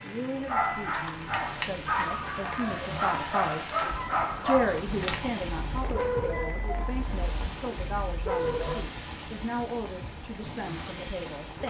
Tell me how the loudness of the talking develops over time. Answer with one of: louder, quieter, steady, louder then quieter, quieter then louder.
louder then quieter.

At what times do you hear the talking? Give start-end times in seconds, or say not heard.
0.0-3.8, 4.4-11.6.